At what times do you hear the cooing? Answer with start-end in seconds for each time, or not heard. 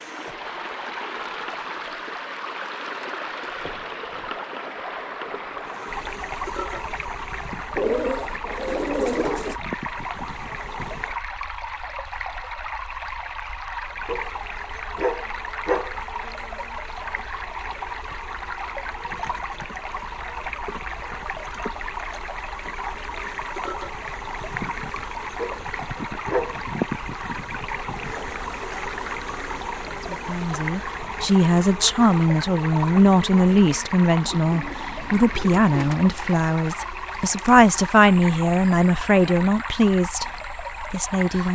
7.8-9.6, 34.5-36.0.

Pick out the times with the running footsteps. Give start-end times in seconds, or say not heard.
not heard.